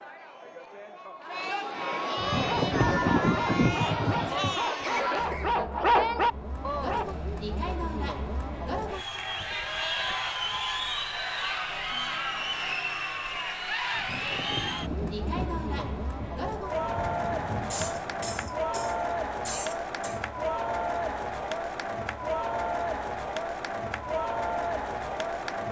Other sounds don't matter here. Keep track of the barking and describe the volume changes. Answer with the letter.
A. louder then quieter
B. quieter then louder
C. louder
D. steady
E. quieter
C.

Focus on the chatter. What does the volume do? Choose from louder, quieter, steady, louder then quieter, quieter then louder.
steady.